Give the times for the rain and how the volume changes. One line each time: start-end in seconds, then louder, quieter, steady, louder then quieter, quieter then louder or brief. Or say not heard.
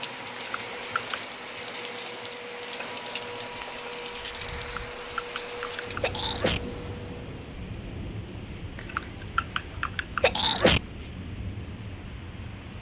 0.0-12.7 steady.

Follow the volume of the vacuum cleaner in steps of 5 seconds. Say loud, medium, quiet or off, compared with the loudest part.
loud, loud, off.